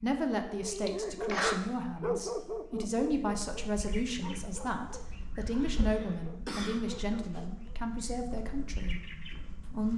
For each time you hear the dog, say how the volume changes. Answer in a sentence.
You can hear the dog from 0.5 to 7.8 s, getting quieter.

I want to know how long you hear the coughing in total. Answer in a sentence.
The coughing can be heard for 2 seconds in total.